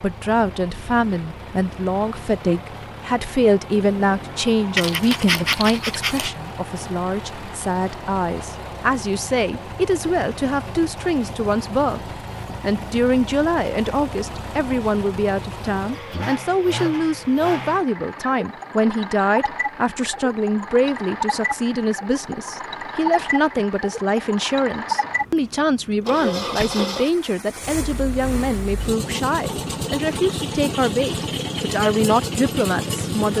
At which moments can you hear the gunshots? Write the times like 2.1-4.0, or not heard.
not heard.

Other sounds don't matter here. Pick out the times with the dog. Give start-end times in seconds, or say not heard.
4.8-6.3.